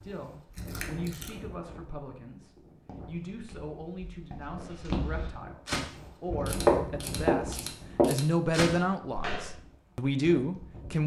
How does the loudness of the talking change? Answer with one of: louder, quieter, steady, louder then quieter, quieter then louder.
louder.